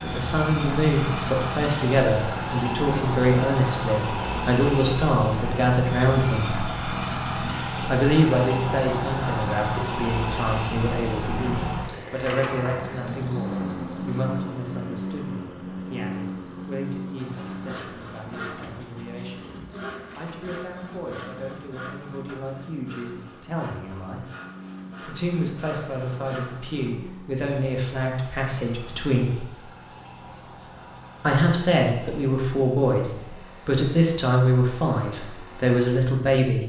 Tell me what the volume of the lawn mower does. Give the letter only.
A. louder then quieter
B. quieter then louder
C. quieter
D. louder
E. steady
C.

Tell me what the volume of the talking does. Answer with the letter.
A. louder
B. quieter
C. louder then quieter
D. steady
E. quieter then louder
E.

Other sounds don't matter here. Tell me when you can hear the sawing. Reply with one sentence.
The sawing can be heard from 17.1 to 26.9 s.